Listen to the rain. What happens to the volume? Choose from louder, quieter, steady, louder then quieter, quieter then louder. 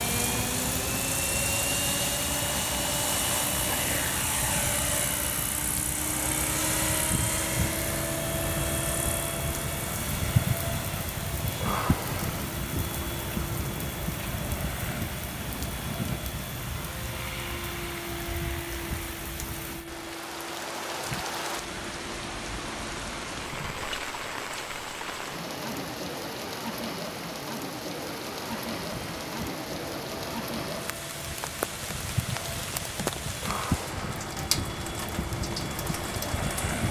steady.